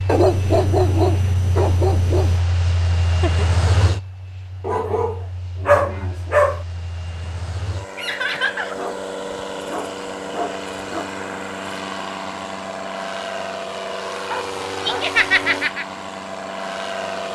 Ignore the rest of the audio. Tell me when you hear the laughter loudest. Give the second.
15 s.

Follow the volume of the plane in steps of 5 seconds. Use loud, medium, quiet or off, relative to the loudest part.
loud, medium, loud, loud.